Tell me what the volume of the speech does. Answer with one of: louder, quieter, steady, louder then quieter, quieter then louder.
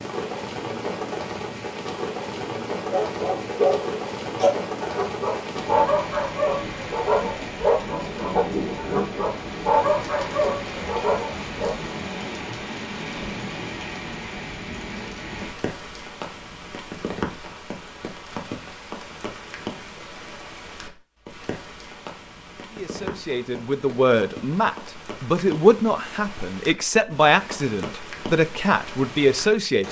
steady.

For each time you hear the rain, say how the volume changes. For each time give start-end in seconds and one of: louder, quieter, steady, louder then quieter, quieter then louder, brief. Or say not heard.
0.0-29.8 quieter.